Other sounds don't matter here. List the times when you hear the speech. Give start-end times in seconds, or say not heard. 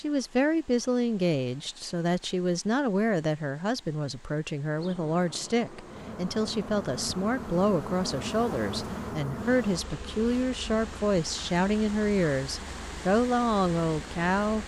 0.0-14.6.